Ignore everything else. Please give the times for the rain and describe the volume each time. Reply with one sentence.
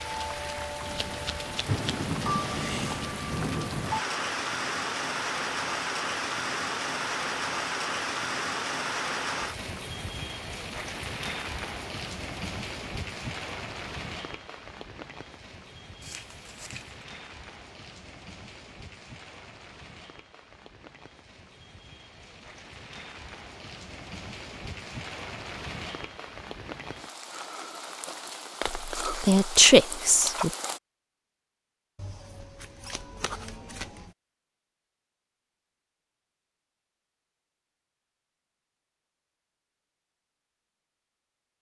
The rain can be heard from 0.0 to 30.8 s, getting quieter then louder.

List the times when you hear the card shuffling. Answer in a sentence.
You can hear the card shuffling from 0.8 to 1.8 s, from 16.0 to 17.1 s and from 31.9 to 34.1 s.